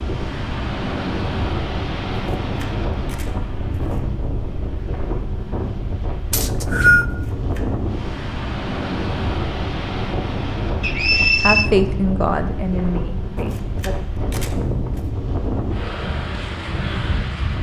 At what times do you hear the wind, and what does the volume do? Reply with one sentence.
The wind can be heard from 0.0 to 17.5 s, at a steady volume.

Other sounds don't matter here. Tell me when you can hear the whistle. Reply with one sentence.
The whistle can be heard from 6.3 to 7.0 s and from 10.8 to 11.7 s.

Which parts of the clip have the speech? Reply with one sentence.
The speech can be heard from 11.4 to 13.9 s.